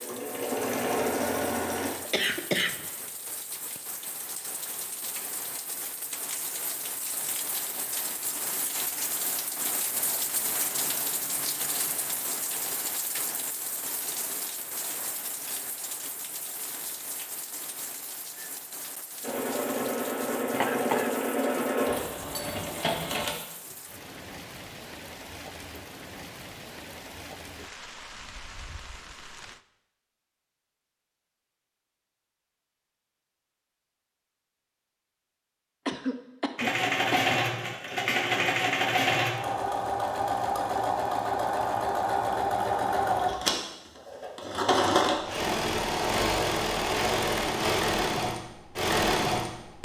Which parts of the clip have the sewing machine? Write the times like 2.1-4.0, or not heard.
0.0-1.9, 19.2-23.4, 36.5-49.8.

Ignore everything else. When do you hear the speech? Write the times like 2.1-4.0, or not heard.
not heard.